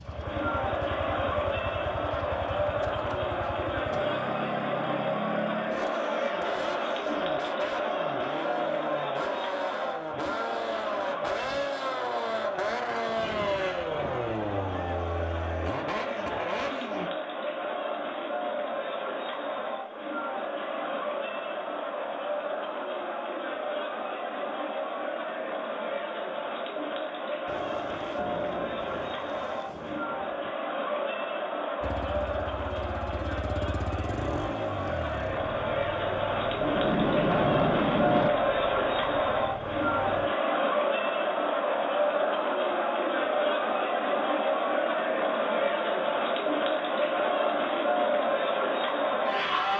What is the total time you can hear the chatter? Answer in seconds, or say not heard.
50 s.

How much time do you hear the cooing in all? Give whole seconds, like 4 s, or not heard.
not heard.